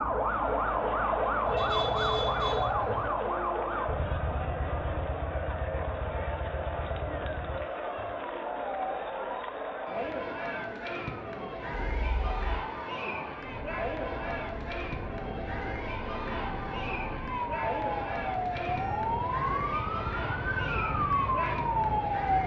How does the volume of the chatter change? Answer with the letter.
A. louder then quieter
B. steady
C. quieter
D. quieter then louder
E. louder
B.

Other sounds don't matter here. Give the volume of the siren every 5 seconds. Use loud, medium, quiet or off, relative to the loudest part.
loud, quiet, quiet, medium, loud.